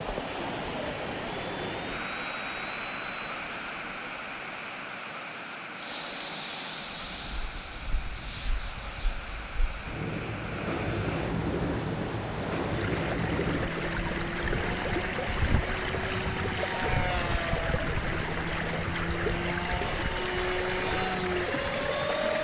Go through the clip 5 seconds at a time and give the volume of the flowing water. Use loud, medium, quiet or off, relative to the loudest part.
loud, medium, loud, loud, loud.